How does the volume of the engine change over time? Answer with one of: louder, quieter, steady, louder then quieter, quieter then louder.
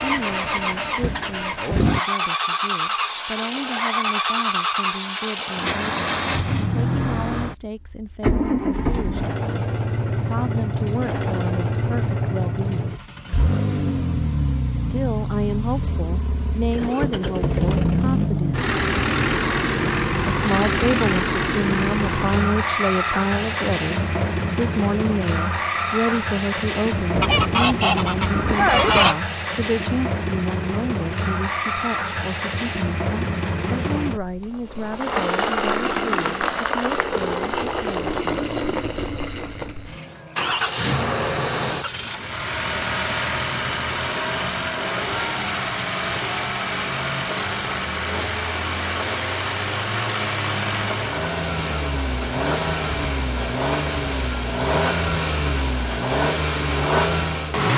steady.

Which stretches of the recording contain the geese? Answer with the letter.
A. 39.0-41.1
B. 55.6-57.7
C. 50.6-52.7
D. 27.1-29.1
D.